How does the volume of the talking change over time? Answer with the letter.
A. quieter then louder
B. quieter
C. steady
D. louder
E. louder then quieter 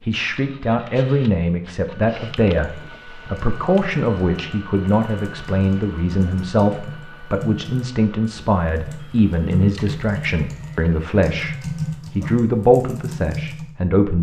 C.